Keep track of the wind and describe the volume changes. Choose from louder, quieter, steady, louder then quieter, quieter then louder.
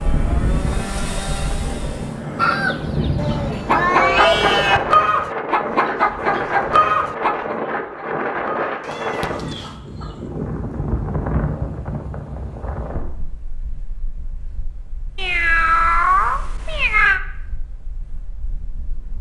quieter.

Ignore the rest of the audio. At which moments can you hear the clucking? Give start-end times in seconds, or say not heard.
2.4-10.3.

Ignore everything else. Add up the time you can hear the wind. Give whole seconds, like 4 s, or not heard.
19 s.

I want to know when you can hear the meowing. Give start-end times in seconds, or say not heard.
3.1-4.8, 8.8-9.7, 15.2-17.2.